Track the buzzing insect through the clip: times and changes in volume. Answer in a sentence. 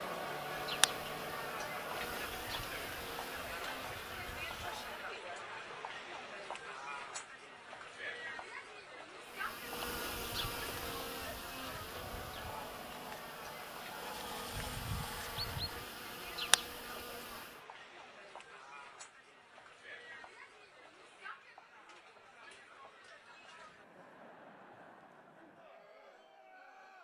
The buzzing insect can be heard from 0.0 to 5.2 s, getting quieter; and from 9.2 to 17.6 s, getting quieter then louder.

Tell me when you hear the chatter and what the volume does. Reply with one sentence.
You can hear the chatter from 0.0 to 26.9 s, getting quieter.